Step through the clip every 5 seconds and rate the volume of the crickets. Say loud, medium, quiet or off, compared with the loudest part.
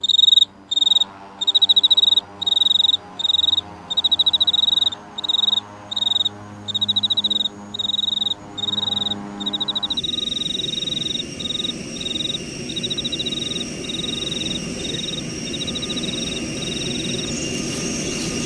loud, medium, medium, quiet.